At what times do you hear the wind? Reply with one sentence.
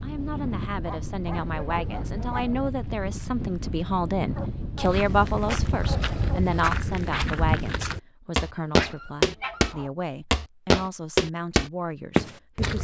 The wind can be heard from 0.0 to 7.5 s.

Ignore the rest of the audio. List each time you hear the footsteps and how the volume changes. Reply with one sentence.
The footsteps can be heard from 4.8 to 12.7 s, getting louder.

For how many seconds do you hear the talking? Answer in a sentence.
The talking can be heard for 13 seconds in total.